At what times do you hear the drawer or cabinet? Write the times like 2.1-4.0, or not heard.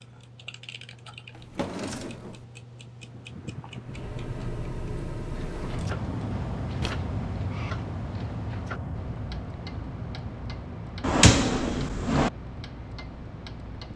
1.4-2.5, 5.8-7.0, 11.0-12.3.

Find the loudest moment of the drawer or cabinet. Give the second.
11 s.